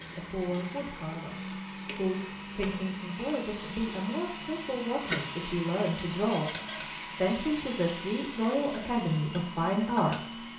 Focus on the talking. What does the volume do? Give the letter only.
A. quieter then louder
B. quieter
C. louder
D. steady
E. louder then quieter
C.